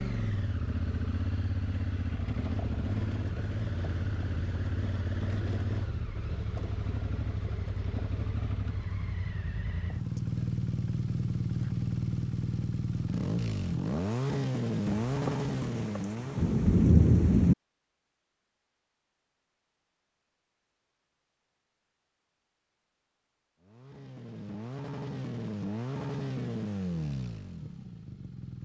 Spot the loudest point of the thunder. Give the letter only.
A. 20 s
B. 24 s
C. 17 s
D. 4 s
C.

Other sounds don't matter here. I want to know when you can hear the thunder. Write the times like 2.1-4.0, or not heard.
15.1-17.6.